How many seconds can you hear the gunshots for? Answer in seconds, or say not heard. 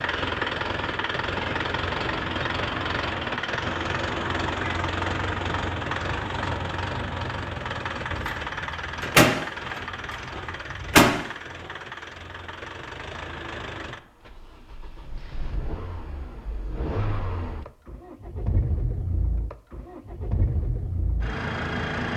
3 s.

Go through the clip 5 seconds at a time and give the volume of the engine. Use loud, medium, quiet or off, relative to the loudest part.
loud, loud, medium, medium, loud.